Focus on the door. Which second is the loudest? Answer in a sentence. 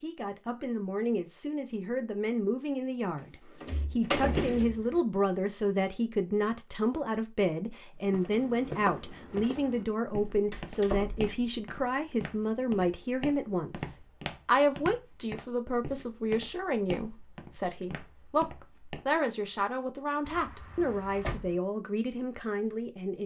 The loudest moment of the door is at 4 seconds.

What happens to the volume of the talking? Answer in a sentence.
The volume of the talking stays about the same.